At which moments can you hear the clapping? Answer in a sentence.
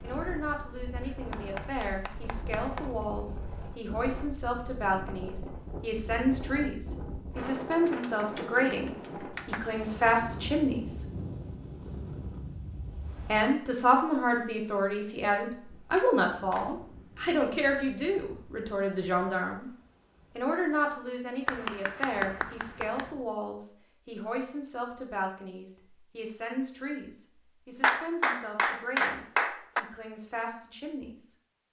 The clapping can be heard from 1.0 to 2.9 s, from 7.7 to 9.6 s, from 15.9 to 16.7 s, from 21.4 to 23.1 s and from 27.8 to 29.8 s.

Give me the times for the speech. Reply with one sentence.
You can hear the speech from 0.0 to 11.1 s, from 13.2 to 19.7 s and from 20.4 to 31.4 s.